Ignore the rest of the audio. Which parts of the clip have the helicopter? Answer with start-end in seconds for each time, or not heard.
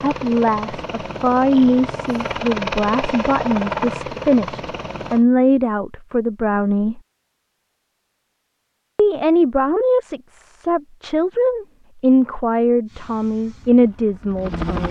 0.0-5.2, 12.8-14.8.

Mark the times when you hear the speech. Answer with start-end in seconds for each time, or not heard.
0.0-7.0, 8.9-14.8.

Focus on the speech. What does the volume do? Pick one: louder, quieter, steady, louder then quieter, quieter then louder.
steady.